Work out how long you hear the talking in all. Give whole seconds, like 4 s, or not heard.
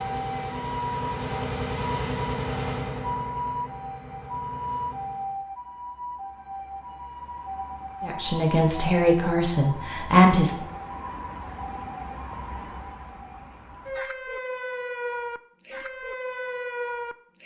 3 s.